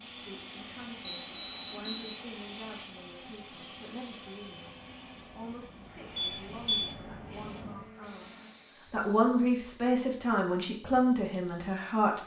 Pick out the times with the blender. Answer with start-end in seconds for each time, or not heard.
0.0-8.9.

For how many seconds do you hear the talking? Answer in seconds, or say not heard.
12 s.